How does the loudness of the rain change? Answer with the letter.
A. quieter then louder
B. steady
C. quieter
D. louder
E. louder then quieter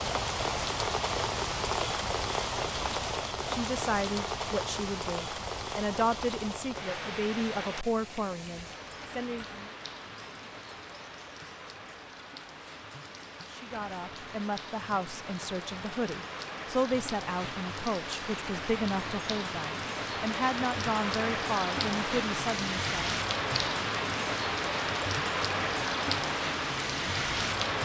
A.